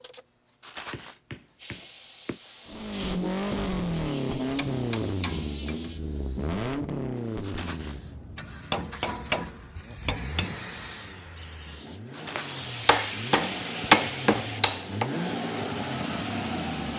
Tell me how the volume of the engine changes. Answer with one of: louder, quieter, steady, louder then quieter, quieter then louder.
quieter then louder.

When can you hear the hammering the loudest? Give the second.
14 s.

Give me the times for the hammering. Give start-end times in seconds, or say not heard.
0.9-2.4, 4.5-5.9, 8.7-10.8, 12.8-15.1.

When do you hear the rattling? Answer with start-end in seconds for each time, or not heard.
0.6-1.2, 7.4-8.0, 12.1-12.6.